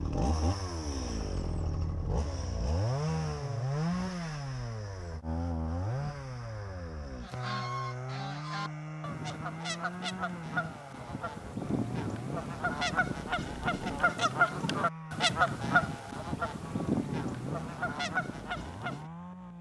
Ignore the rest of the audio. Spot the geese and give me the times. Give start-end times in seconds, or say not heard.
7.2-19.1.